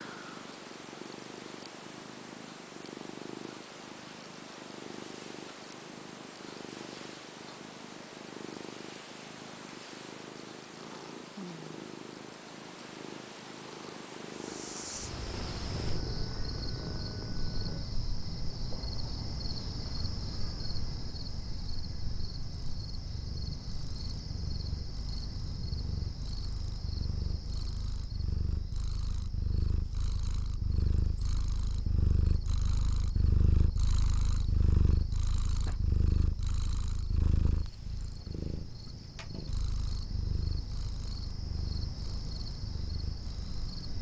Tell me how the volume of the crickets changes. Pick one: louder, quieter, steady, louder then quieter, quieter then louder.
quieter then louder.